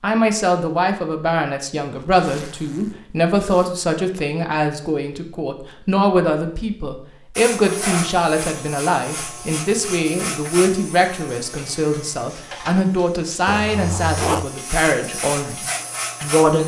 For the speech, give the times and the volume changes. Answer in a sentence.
The speech can be heard from 0.0 to 16.6 s, at a steady volume.